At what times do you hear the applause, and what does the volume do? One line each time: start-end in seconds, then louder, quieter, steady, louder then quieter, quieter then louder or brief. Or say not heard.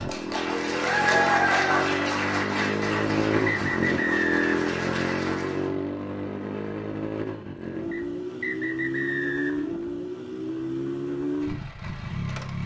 0.0-5.7 quieter.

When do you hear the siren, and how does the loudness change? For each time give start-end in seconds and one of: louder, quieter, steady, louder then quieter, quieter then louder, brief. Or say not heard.
not heard.